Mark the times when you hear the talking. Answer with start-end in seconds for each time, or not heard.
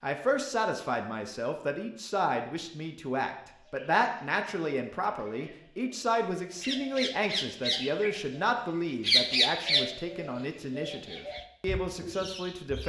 0.0-12.8.